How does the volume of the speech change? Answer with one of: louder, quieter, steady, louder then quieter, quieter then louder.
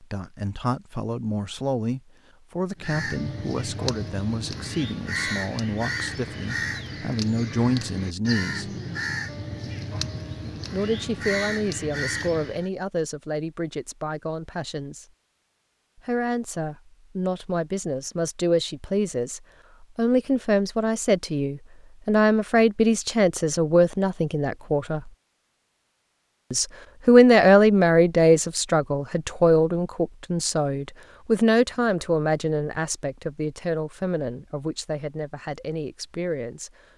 louder then quieter.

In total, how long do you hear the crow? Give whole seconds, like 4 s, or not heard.
10 s.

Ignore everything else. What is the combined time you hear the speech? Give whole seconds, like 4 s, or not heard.
32 s.